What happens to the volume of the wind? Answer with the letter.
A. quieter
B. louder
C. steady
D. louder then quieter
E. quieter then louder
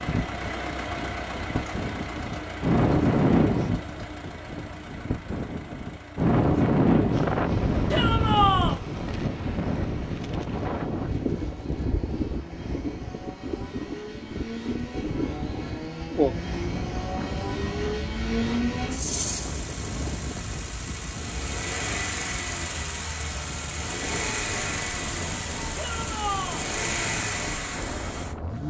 A.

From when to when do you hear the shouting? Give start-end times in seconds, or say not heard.
7.9-8.8, 25.8-26.6.